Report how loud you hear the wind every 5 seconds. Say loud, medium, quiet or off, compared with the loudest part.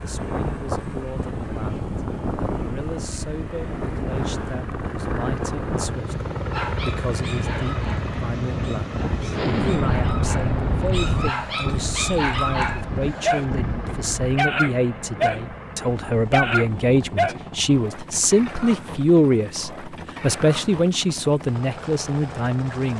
loud, loud, loud, off, off.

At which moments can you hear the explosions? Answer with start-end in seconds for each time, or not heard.
9.3-11.3.